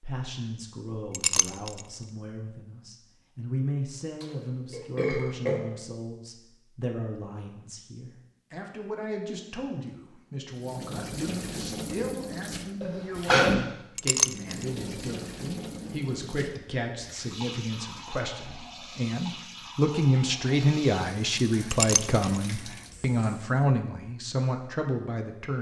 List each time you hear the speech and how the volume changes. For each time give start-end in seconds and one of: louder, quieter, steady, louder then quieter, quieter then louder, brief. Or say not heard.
0.0-25.5 louder.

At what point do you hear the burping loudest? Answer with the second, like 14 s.
13 s.